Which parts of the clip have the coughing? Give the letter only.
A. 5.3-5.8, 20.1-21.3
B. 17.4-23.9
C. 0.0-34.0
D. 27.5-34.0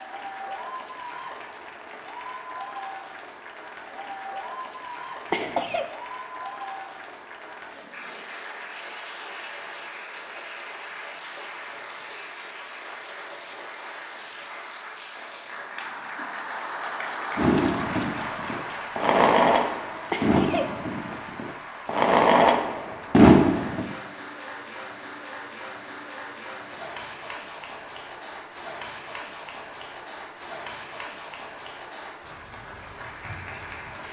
A.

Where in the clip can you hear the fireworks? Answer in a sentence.
You can hear the fireworks from 17.4 to 23.9 s.